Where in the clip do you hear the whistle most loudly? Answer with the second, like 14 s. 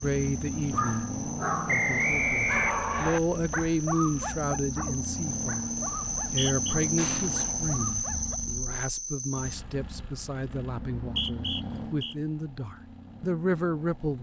2 s.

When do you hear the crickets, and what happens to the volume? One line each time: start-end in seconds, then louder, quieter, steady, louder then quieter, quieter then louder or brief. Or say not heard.
0.0-9.6 louder.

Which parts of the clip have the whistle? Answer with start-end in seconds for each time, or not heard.
1.6-3.2, 6.2-6.8, 10.8-12.2.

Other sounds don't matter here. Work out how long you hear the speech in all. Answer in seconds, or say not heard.
14 s.